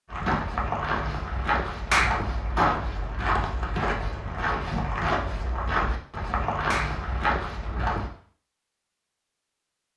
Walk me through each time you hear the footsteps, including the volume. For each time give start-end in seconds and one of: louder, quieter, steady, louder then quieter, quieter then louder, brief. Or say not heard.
0.1-8.1 steady.